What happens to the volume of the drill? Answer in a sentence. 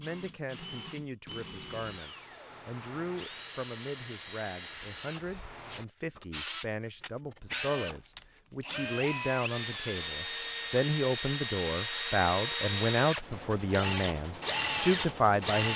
The loudness of the drill goes up.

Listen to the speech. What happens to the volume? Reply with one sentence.
The loudness of the speech goes up.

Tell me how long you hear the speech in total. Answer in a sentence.
The speech can be heard for 16 seconds in total.